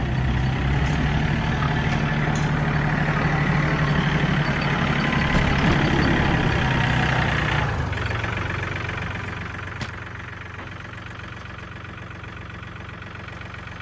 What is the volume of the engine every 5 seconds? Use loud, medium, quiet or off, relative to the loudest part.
loud, loud, quiet.